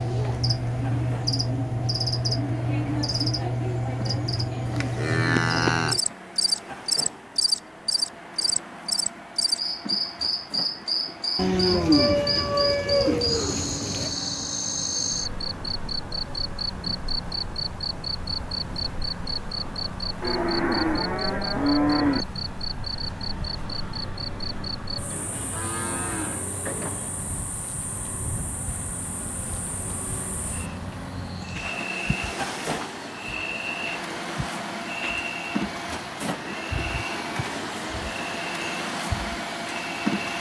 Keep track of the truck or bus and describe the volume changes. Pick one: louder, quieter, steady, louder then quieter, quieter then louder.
louder.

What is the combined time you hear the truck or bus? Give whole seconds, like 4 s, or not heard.
40 s.